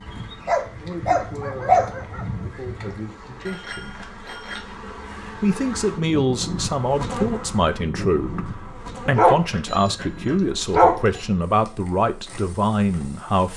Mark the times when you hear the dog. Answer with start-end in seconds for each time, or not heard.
0.1-3.0, 9.2-11.0.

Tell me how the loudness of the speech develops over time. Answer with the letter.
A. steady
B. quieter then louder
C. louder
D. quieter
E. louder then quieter
C.